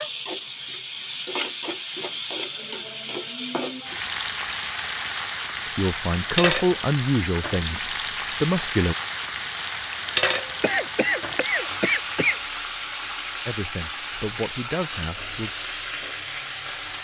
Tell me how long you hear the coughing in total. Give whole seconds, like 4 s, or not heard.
2 s.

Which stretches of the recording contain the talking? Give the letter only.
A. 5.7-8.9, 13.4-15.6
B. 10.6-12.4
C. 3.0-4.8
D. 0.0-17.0
A.